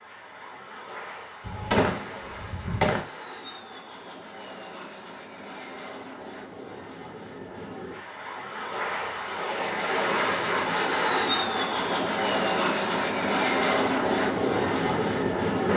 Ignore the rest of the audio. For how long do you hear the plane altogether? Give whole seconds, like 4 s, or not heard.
16 s.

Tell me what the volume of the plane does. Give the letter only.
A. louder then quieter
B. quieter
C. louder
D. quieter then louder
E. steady
C.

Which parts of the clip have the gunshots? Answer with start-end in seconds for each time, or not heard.
1.4-3.0.